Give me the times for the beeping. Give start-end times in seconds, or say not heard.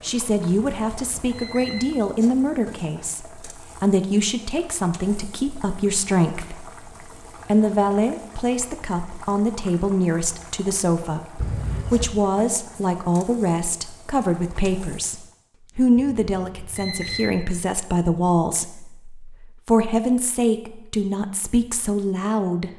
0.8-1.8, 11.3-12.1, 15.9-17.2.